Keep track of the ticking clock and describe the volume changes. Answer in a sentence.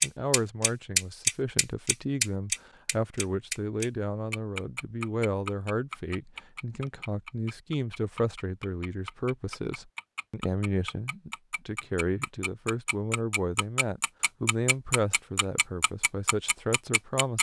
The volume of the ticking clock goes down, then up.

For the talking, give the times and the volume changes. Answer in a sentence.
You can hear the talking from 0.0 to 17.3 s, at a steady volume.